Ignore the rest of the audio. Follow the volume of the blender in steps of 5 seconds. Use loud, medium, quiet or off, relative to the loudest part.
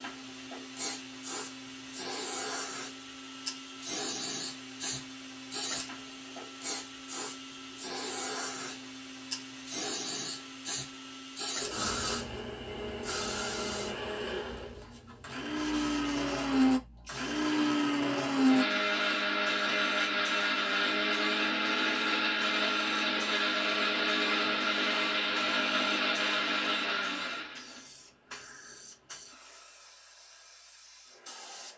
quiet, quiet, quiet, loud, loud, loud, off.